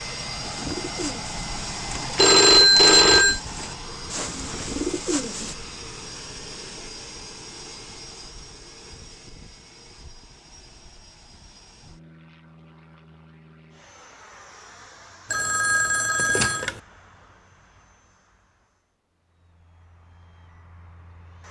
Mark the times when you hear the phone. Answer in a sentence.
The phone can be heard from 2.1 to 3.4 s and from 15.3 to 16.8 s.